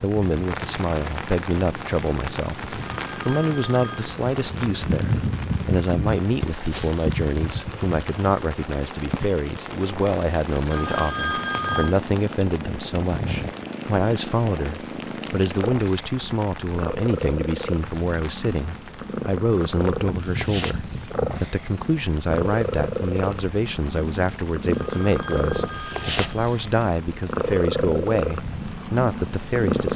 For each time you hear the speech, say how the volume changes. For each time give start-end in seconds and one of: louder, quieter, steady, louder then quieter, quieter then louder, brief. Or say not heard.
0.0-29.9 steady.